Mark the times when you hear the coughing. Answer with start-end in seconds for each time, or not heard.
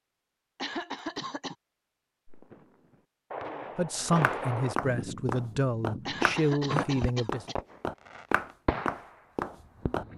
0.6-1.6, 6.0-7.5.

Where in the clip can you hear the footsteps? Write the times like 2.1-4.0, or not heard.
4.2-10.1.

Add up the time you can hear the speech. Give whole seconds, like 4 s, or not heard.
4 s.